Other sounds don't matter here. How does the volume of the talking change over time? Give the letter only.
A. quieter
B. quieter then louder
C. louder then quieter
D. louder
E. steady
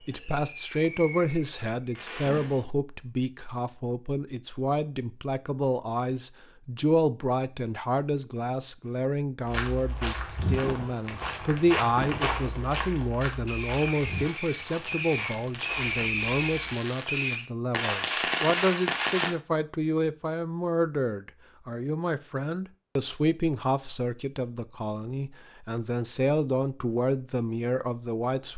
E.